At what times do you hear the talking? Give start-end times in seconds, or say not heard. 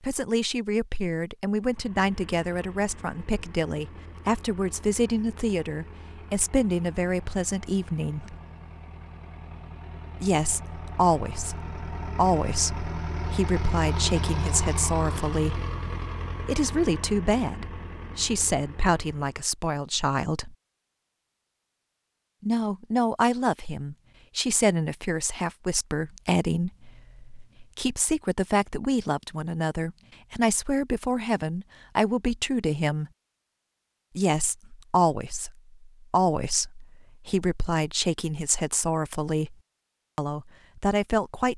0.0-8.3, 10.2-15.6, 16.4-20.6, 22.4-33.1, 34.1-39.5, 40.1-41.5.